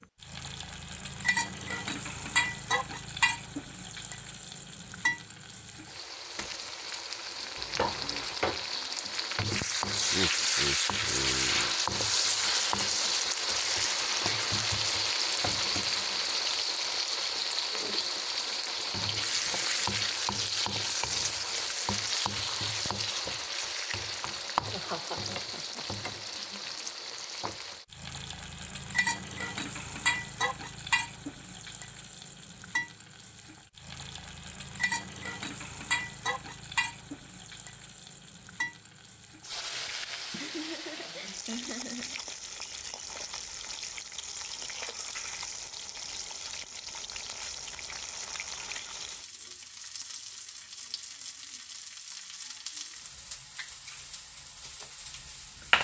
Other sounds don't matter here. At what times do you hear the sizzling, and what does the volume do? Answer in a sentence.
The sizzling can be heard from 0.0 to 55.8 s, getting quieter.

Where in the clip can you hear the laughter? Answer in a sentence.
You can hear the laughter from 10.1 to 11.8 s, from 24.6 to 25.9 s and from 40.3 to 42.2 s.